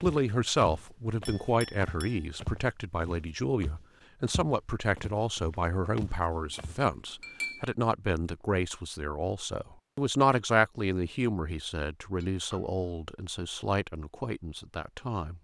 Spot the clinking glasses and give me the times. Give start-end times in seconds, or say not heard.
1.2-2.2, 6.3-7.8, 12.2-12.8.